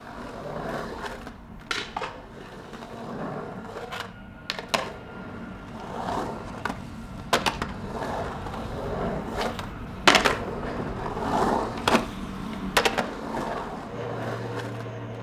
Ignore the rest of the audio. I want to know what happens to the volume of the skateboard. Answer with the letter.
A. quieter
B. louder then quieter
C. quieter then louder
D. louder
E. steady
D.